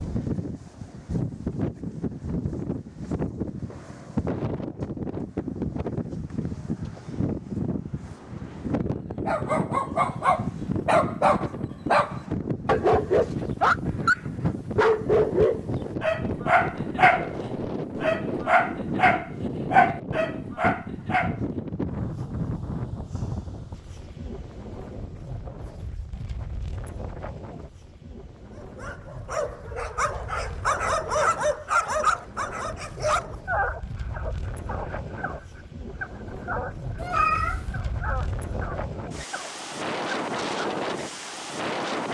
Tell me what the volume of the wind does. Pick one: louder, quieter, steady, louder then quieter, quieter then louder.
quieter then louder.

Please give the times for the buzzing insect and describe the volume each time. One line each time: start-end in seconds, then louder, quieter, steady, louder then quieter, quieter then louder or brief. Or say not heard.
not heard.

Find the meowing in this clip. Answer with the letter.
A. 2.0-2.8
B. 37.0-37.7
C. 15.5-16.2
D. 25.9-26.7
B.